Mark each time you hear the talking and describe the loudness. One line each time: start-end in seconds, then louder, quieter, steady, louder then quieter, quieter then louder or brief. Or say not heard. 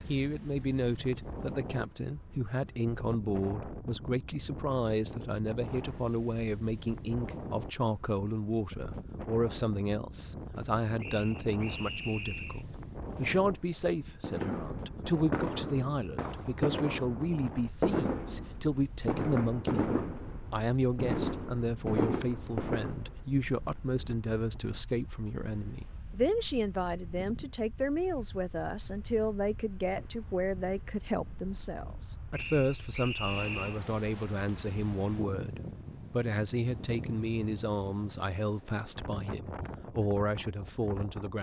0.1-41.3 steady.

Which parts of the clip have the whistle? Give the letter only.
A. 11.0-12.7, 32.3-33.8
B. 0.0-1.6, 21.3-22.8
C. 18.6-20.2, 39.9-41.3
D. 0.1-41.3
A.